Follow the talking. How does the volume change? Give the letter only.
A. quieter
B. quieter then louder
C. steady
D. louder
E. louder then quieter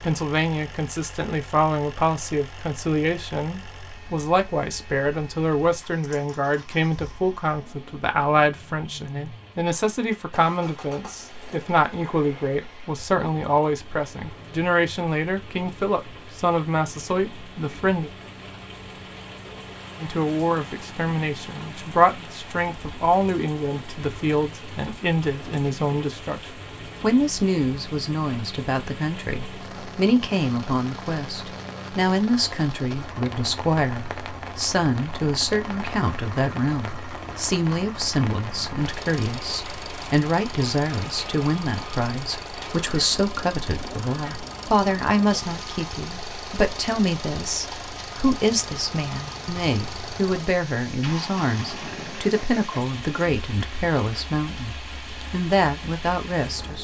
C.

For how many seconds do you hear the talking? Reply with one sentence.
You can hear the talking for 55 seconds altogether.